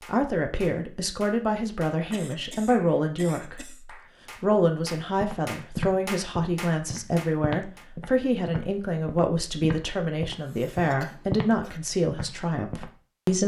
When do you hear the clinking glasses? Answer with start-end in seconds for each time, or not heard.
not heard.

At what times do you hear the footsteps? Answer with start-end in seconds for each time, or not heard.
5.2-12.9.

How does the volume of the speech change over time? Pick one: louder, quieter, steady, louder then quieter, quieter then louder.
steady.